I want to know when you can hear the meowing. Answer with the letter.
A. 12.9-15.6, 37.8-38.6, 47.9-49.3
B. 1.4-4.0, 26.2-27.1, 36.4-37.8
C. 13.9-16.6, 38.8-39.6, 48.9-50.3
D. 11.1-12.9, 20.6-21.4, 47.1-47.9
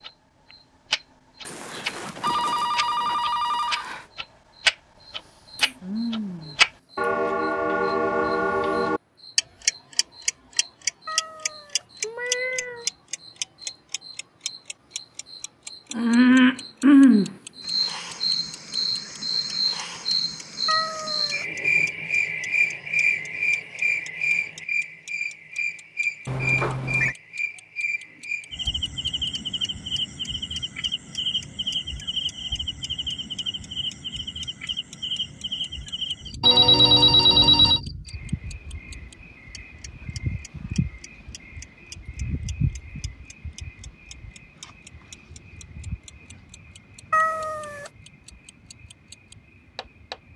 D.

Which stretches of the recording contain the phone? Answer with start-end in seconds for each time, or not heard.
1.4-4.0, 26.2-27.1, 36.4-37.8.